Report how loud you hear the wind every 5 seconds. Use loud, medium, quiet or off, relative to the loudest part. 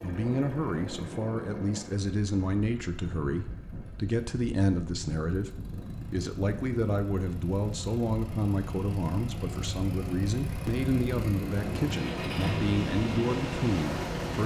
medium, medium, loud.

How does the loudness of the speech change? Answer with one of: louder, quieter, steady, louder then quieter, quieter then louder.
steady.